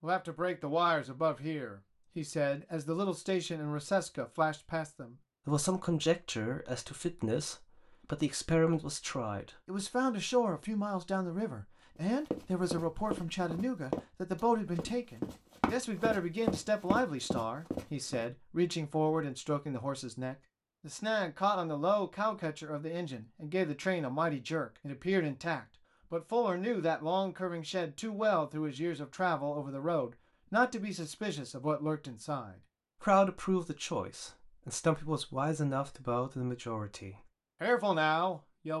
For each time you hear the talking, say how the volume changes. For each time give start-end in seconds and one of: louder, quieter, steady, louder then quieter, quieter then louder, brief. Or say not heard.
0.0-38.7 steady.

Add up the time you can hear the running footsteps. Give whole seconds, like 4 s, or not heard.
6 s.